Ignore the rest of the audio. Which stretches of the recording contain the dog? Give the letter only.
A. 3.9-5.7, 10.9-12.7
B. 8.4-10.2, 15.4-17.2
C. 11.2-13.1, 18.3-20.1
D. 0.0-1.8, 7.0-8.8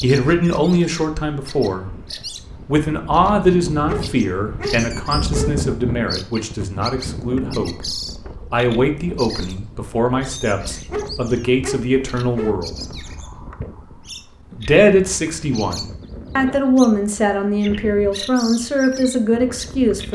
A.